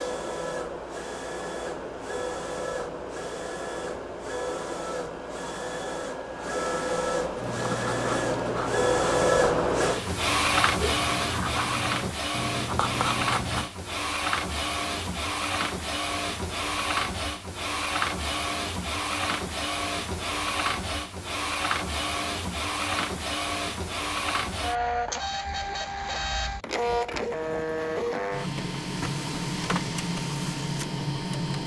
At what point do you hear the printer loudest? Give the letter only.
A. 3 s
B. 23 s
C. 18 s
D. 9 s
D.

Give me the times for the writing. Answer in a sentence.
The writing can be heard from 7.3 to 13.7 s.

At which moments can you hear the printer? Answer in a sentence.
You can hear the printer from 0.0 to 31.6 s.